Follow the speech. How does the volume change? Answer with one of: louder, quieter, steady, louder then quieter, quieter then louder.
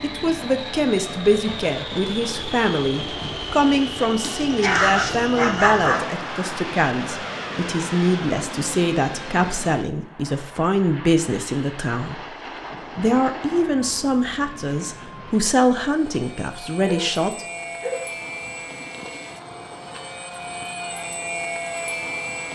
steady.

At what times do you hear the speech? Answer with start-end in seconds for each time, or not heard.
0.0-12.3, 12.9-17.4.